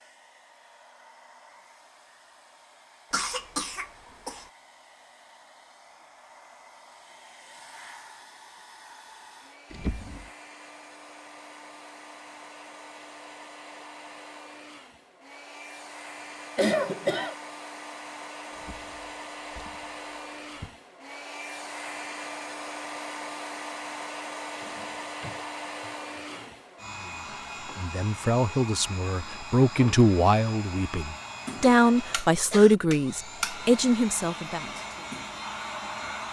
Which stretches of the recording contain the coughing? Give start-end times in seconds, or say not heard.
3.1-4.5, 16.6-17.4, 31.6-32.8.